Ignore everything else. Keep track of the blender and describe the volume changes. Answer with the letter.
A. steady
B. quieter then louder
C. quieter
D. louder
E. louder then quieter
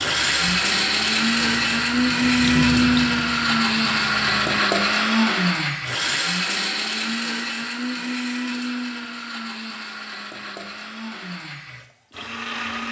C.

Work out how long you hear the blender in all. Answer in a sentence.
You can hear the blender for 13 seconds altogether.